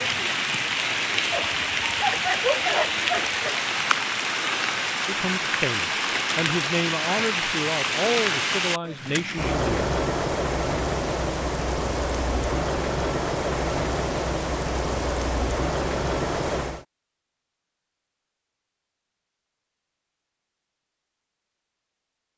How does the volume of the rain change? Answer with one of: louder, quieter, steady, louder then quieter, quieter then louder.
steady.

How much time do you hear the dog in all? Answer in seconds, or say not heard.
2 s.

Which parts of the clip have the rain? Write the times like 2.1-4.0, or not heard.
0.0-16.9.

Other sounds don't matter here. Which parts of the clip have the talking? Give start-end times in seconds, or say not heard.
5.0-9.9.